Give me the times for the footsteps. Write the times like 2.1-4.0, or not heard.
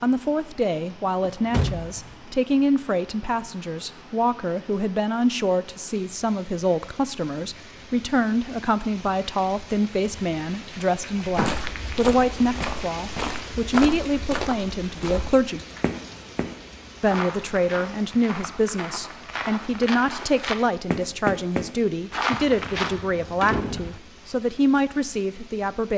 11.2-22.9.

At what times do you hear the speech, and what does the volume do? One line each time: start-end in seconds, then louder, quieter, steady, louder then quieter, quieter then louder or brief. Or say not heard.
0.0-15.6 steady
17.0-25.9 steady.